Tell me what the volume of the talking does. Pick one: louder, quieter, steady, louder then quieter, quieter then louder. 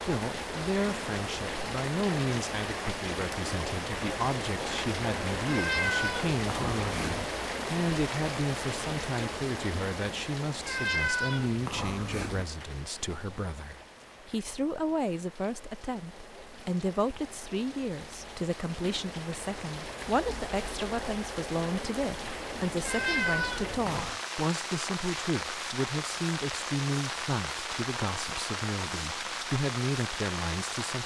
steady.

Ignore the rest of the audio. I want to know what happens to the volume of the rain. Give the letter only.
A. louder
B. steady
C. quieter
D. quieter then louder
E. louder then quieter
D.